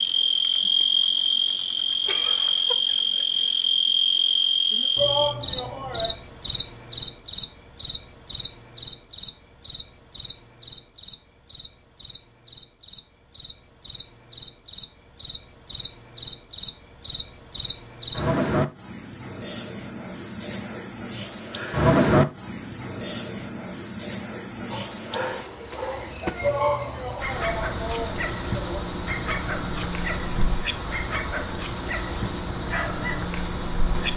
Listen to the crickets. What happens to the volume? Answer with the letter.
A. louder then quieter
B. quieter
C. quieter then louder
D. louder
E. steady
C.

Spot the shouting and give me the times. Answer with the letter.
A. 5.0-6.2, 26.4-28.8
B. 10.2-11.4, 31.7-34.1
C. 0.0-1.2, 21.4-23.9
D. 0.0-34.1
A.